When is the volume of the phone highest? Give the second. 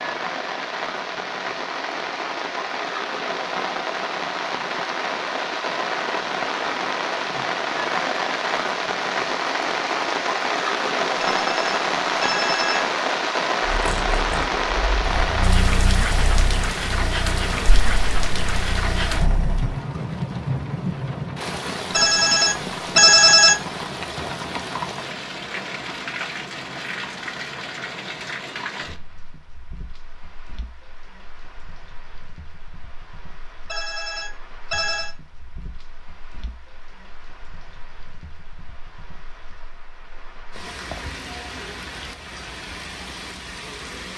23 s.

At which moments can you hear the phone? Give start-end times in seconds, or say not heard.
11.2-12.8, 21.9-23.6, 33.6-35.1.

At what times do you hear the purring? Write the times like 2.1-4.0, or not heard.
13.7-19.8.